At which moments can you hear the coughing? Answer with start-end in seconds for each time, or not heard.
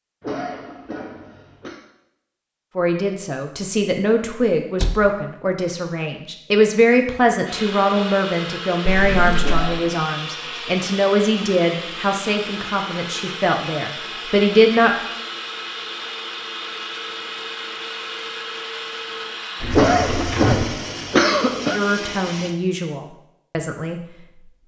0.2-1.8, 9.4-10.0, 19.7-21.8.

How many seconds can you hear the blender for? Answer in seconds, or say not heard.
15 s.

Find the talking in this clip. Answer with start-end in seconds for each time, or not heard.
2.8-14.9, 21.7-24.0.